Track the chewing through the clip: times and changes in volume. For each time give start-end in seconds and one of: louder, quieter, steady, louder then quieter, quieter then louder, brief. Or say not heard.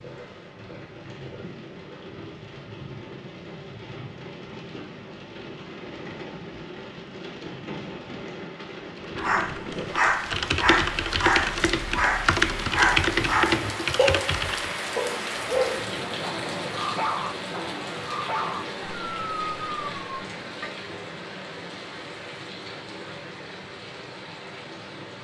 not heard.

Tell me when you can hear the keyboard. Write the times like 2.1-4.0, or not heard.
8.8-14.8.